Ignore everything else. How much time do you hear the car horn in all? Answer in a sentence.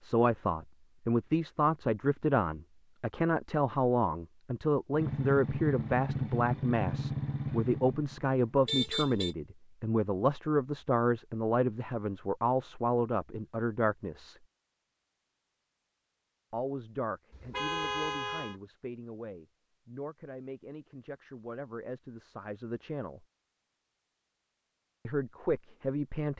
The car horn can be heard for 2 seconds in total.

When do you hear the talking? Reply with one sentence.
You can hear the talking from 0.0 to 14.4 s, from 16.5 to 23.2 s and from 25.1 to 26.3 s.